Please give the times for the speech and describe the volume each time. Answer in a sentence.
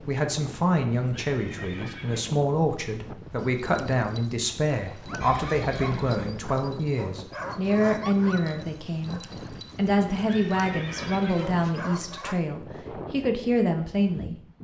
You can hear the speech from 0.1 to 14.3 s, at a steady volume.